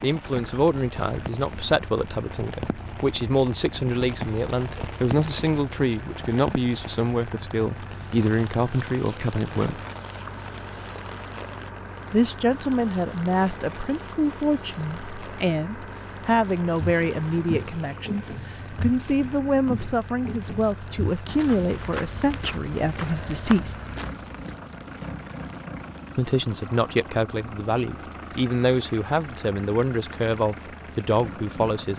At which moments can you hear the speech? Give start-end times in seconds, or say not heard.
0.0-9.8, 12.1-23.8, 26.1-31.9.